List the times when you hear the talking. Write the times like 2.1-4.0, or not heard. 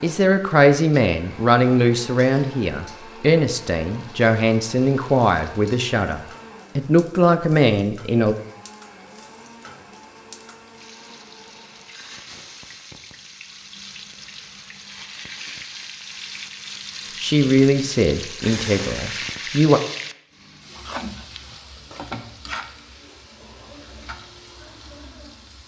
0.0-8.3, 17.2-19.8.